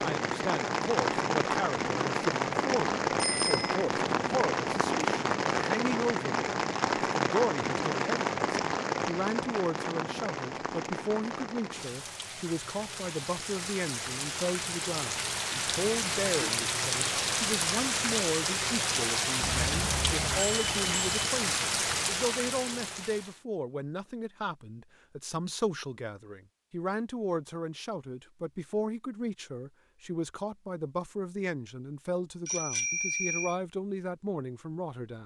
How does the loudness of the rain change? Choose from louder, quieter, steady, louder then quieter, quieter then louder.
quieter then louder.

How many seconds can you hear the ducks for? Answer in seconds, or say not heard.
not heard.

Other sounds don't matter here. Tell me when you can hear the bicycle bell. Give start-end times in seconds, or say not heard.
3.1-3.9, 19.4-21.1, 32.5-33.5.